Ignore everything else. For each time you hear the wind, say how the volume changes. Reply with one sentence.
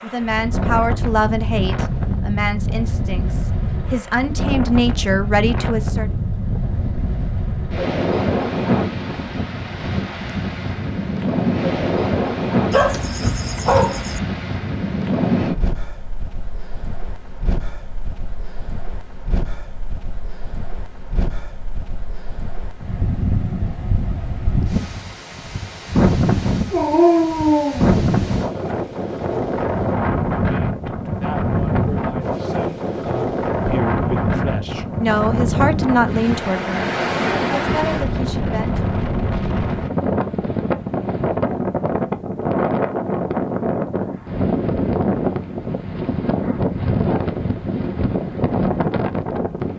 You can hear the wind from 0.0 to 49.7 s, at a steady volume.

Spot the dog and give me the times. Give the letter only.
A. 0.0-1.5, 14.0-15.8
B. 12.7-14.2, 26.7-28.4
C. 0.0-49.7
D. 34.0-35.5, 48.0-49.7
B.